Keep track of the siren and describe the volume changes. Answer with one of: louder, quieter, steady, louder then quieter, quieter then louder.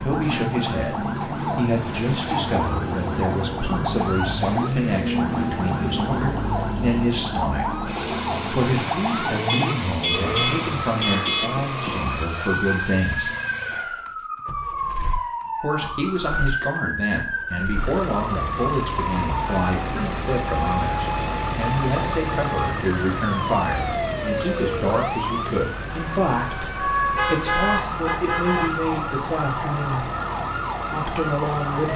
steady.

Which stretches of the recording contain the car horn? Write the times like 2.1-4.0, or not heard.
9.4-11.5, 27.1-28.8.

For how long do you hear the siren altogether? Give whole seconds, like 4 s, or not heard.
32 s.